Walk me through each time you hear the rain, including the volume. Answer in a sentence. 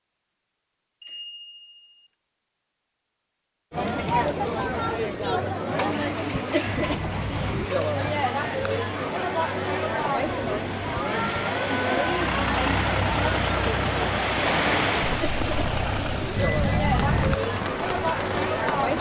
You can hear the rain from 5.7 to 18.9 s, getting louder then quieter.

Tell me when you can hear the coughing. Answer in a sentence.
You can't hear the coughing here.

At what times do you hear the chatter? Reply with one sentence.
The chatter can be heard from 3.7 to 18.9 s.